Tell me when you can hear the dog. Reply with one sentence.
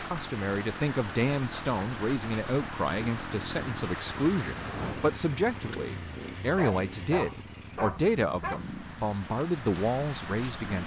The dog can be heard from 5.7 to 8.6 s.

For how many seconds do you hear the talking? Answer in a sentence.
You can hear the talking for 11 seconds altogether.